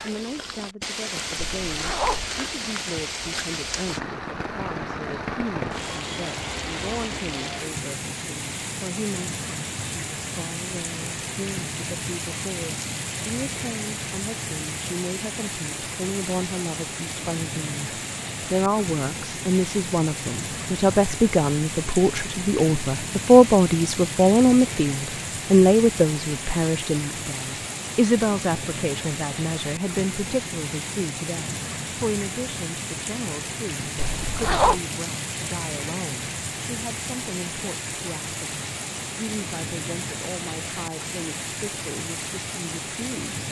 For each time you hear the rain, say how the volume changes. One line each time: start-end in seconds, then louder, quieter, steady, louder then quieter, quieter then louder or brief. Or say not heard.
0.0-43.4 steady.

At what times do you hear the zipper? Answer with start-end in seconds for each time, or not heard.
1.5-2.2, 34.0-34.8.